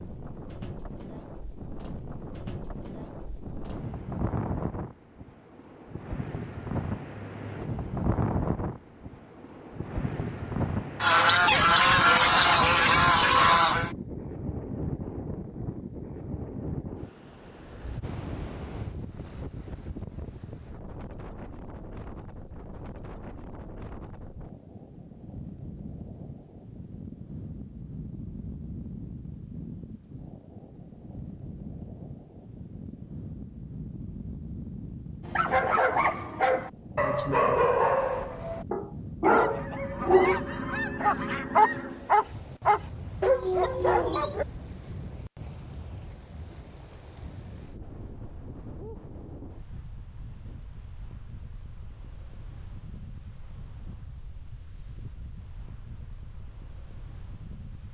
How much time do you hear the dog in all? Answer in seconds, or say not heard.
9 s.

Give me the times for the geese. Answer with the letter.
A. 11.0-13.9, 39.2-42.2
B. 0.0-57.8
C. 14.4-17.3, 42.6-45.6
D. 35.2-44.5
A.